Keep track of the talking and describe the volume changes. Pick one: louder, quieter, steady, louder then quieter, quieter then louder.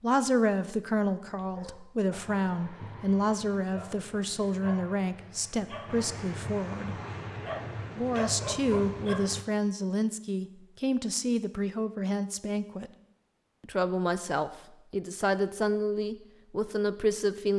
steady.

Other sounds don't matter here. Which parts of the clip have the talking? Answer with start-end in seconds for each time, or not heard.
0.0-7.0, 8.0-12.9, 13.6-17.5.